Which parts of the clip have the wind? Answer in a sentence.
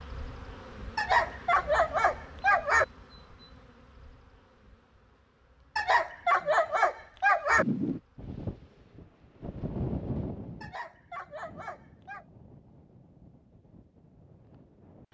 You can hear the wind from 7.5 to 15.1 s.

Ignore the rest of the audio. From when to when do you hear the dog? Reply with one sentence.
You can hear the dog from 0.9 to 2.9 s, from 5.8 to 7.7 s and from 10.6 to 12.2 s.